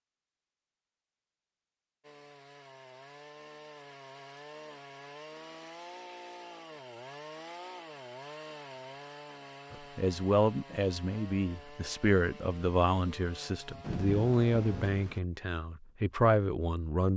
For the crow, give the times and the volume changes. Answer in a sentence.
The crow can't be heard in this clip.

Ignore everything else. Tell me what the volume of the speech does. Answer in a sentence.
The volume of the speech stays about the same.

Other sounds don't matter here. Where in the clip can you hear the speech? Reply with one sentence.
The speech can be heard from 9.7 to 17.1 s.